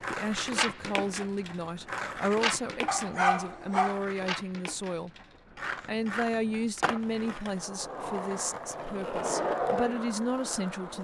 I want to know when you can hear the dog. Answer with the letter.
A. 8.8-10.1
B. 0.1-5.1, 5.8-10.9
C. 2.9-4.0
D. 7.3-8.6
C.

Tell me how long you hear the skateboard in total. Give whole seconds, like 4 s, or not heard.
11 s.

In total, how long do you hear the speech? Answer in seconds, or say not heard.
10 s.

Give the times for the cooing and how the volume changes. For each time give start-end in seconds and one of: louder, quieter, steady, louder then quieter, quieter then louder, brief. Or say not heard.
not heard.